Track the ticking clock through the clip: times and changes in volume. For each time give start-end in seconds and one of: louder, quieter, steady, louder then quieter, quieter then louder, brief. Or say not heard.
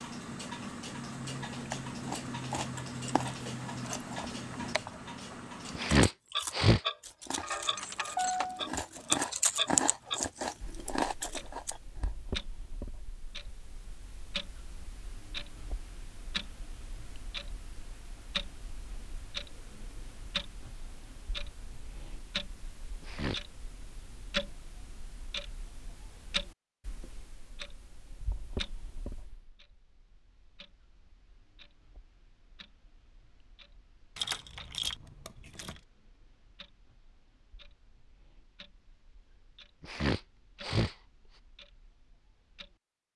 0.0-43.1 quieter.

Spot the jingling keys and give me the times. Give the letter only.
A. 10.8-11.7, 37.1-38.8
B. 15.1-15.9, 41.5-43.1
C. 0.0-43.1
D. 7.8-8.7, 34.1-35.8
D.